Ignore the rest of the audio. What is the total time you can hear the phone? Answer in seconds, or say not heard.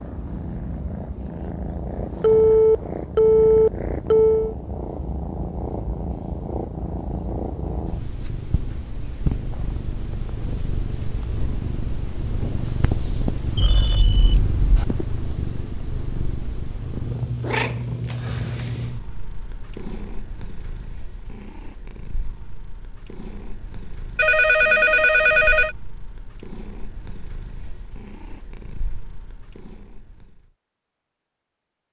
5 s.